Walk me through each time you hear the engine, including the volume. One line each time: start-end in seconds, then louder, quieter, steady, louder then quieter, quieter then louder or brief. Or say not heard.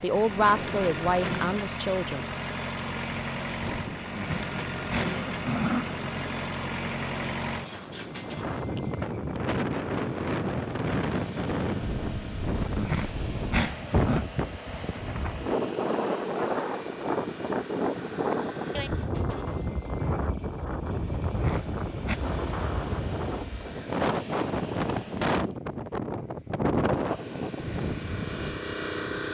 0.0-25.4 quieter
26.8-29.2 brief.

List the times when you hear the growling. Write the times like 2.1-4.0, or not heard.
4.0-5.9, 12.6-14.2, 21.2-22.2.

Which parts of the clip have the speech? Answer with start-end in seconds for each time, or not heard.
0.0-2.2.